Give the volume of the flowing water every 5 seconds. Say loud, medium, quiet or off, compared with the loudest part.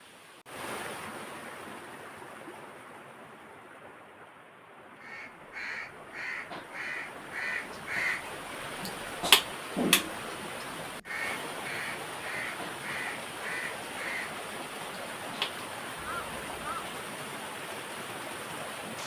medium, loud, loud, loud.